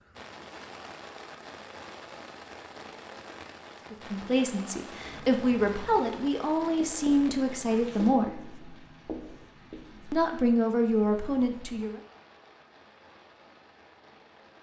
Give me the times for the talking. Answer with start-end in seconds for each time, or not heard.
3.9-8.4, 10.1-12.0.